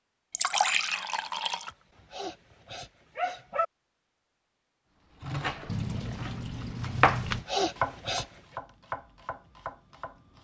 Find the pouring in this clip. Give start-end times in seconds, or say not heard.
0.3-1.7, 5.7-7.5.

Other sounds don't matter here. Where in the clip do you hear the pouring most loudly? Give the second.
1 s.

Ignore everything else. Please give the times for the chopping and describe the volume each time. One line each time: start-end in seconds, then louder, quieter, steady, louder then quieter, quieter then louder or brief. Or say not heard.
5.2-10.3 louder then quieter.